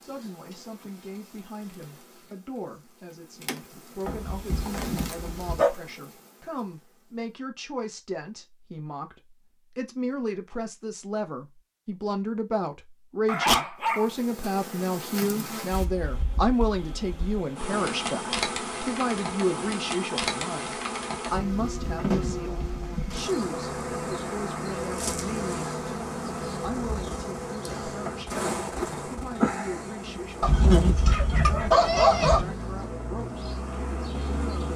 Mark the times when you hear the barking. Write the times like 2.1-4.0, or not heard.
4.0-5.7, 13.2-14.1, 30.4-32.5.